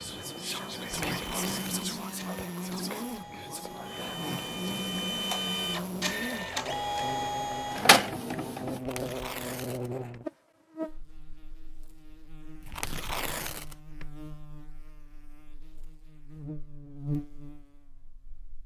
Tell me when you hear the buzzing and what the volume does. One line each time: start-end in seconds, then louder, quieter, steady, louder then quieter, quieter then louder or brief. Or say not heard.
0.0-18.6 quieter then louder.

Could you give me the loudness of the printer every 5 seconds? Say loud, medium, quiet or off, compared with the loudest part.
quiet, loud, off, off.